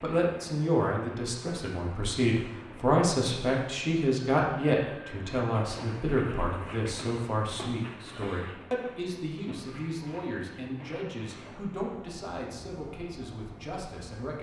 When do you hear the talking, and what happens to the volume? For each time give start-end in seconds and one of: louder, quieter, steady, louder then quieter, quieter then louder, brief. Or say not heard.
0.0-14.3 quieter.